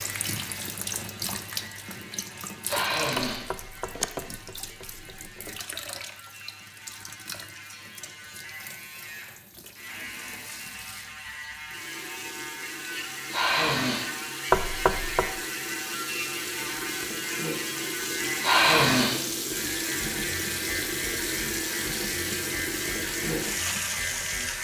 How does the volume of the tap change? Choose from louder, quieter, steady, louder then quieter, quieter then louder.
quieter then louder.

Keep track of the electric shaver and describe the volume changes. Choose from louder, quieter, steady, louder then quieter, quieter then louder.
louder.